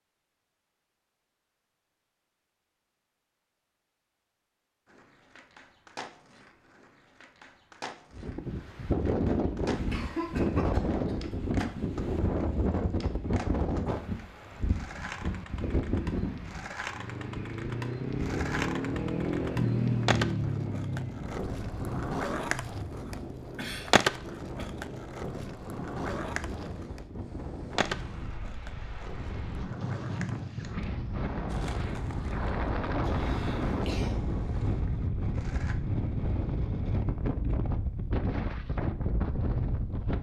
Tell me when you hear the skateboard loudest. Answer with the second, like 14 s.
24 s.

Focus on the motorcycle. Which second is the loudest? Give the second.
20 s.